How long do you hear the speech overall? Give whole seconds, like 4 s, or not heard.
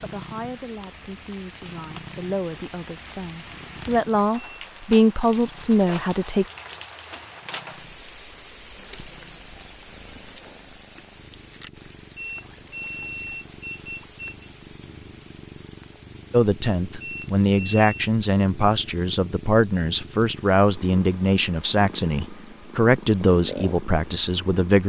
15 s.